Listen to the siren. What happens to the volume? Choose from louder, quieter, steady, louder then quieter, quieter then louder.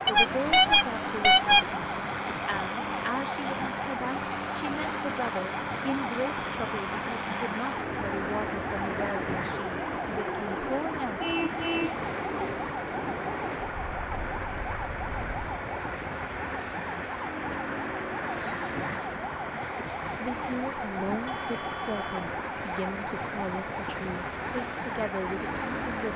steady.